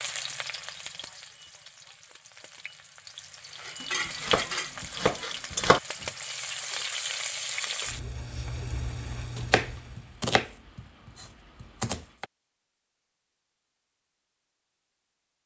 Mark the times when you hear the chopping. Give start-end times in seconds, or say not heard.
3.8-5.8, 9.3-12.2.